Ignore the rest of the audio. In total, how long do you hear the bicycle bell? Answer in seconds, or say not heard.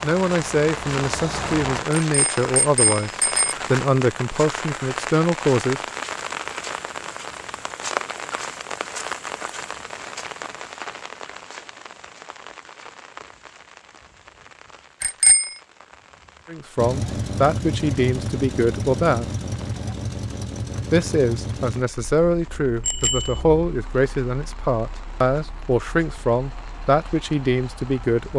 3 s.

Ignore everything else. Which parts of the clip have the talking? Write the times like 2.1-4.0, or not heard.
0.0-3.1, 3.7-5.8, 16.4-19.3, 20.9-28.3.